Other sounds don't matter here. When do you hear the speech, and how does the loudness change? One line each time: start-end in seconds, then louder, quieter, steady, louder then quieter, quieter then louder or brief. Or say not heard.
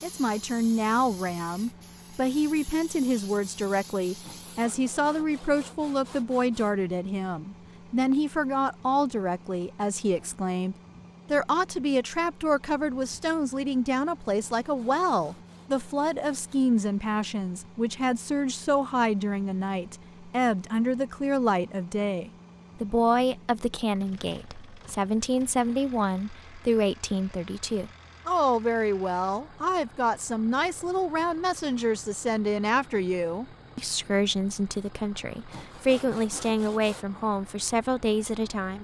0.0-38.7 steady.